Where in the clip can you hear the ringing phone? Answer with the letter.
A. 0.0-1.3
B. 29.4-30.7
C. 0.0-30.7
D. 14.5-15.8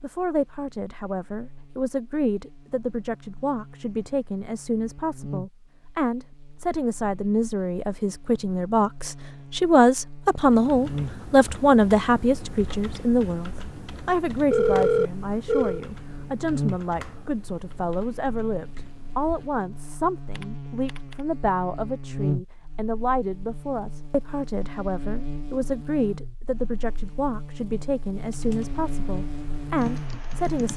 D.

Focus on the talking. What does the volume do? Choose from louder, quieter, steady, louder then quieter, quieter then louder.
louder then quieter.